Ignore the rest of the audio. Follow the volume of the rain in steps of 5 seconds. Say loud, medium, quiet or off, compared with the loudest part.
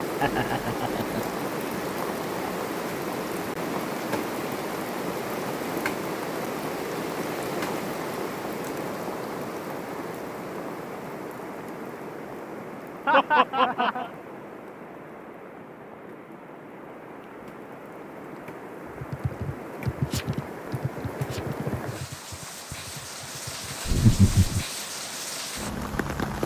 loud, loud, medium, medium, medium, loud.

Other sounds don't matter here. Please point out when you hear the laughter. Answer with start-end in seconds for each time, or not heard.
0.2-1.4, 13.1-14.1, 23.9-24.6.